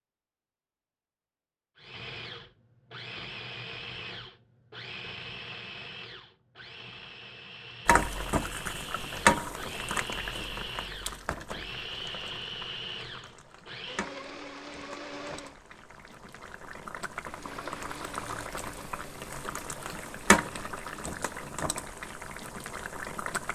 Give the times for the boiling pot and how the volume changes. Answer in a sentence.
You can hear the boiling pot from 7.8 to 23.5 s, getting quieter then louder.